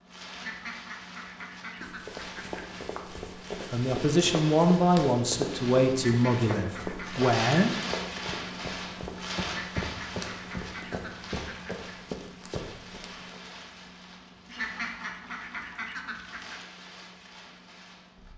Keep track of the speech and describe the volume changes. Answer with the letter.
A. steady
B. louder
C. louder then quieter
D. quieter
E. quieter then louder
D.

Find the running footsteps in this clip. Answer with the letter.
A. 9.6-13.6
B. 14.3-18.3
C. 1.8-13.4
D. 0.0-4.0
C.